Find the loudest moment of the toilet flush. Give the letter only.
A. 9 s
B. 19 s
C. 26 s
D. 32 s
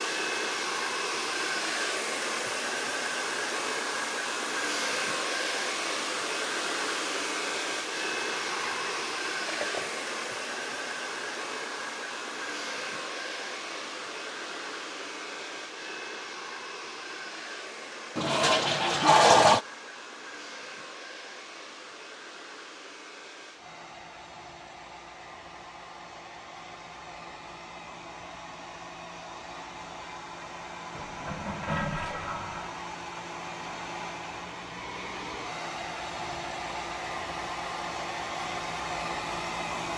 B.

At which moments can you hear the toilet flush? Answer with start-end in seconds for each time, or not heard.
8.2-10.0, 18.1-19.6, 30.9-32.8.